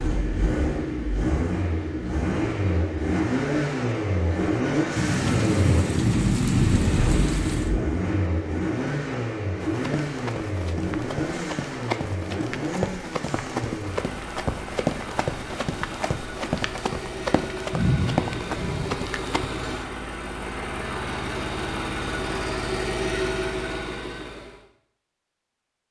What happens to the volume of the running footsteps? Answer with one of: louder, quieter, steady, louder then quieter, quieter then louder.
louder.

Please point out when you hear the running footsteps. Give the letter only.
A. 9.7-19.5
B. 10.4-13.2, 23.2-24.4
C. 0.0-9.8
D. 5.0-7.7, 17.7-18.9
A.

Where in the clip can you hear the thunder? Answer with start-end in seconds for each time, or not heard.
5.0-7.7, 17.7-18.9.